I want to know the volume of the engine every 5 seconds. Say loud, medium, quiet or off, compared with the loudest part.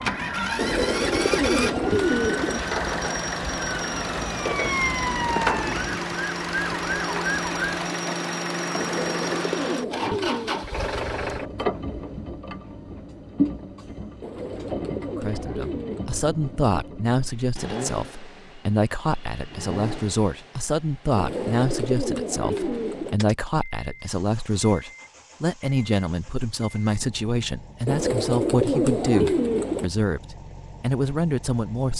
loud, loud, loud, medium, quiet, quiet, quiet.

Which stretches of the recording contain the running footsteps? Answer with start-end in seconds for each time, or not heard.
not heard.